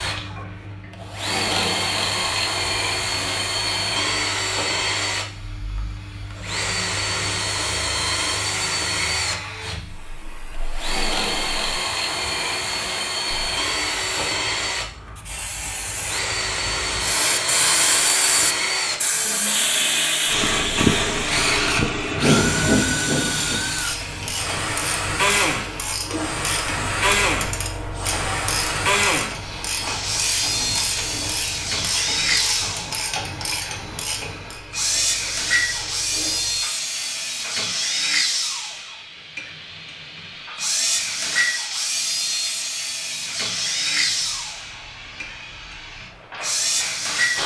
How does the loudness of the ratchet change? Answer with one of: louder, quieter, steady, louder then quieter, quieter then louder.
steady.